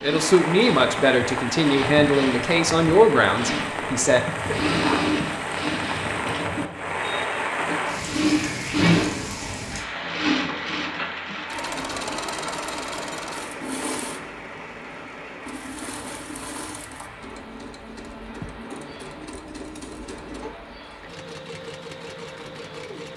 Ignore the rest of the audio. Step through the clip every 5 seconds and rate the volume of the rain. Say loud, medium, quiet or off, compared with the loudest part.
loud, loud, medium, quiet, quiet.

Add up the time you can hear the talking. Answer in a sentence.
The talking can be heard for 4 seconds in total.